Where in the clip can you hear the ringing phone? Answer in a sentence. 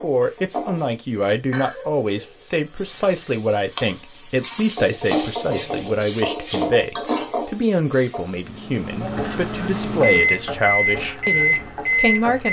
You can't hear the ringing phone here.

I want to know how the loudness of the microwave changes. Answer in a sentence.
The volume of the microwave goes up.